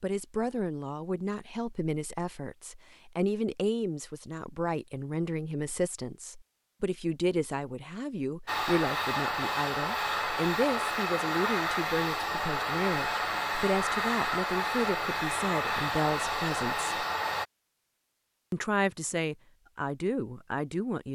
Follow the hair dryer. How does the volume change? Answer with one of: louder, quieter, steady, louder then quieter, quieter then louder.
steady.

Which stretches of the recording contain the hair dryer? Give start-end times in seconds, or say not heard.
8.4-17.4.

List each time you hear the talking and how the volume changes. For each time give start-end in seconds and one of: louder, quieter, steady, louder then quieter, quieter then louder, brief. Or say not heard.
0.0-16.9 steady
18.5-21.1 brief.